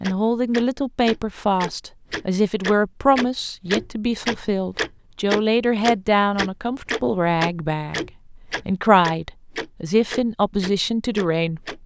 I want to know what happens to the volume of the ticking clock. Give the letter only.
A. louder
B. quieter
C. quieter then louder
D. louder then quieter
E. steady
D.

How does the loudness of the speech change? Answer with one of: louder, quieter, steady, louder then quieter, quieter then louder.
steady.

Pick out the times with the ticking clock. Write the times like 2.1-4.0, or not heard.
0.0-11.8.